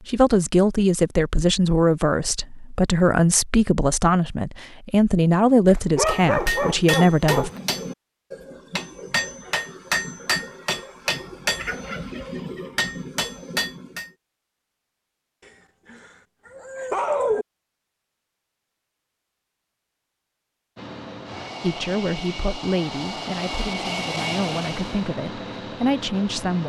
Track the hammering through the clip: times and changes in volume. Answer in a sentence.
You can hear the hammering from 6.0 to 14.1 s, at a steady volume.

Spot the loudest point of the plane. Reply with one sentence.
The volume of the plane peaks at 24 seconds.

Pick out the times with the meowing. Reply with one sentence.
The meowing can't be heard in this clip.